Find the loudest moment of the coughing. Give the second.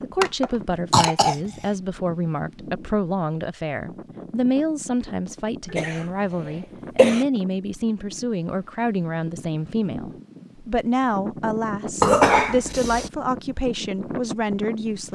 12 s.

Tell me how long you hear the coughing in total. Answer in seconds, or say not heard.
4 s.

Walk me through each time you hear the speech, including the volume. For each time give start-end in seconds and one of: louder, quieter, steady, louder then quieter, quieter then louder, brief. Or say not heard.
0.0-15.0 steady.